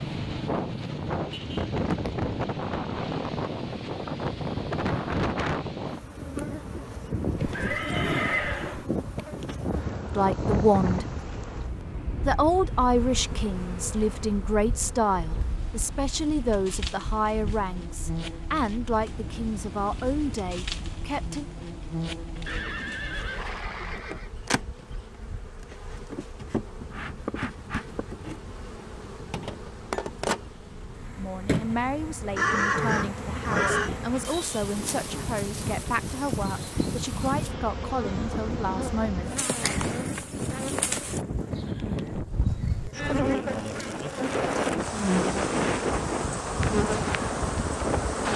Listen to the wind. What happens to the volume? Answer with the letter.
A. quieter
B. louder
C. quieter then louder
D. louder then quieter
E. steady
C.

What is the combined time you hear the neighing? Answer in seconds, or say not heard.
5 s.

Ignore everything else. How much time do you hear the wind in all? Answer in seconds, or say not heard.
48 s.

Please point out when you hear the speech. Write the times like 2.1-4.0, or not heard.
10.2-11.1, 12.2-21.4, 31.1-39.4.